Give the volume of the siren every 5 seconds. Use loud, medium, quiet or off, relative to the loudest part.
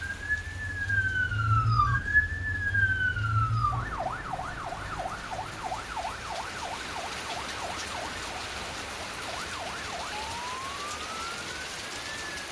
loud, medium, quiet.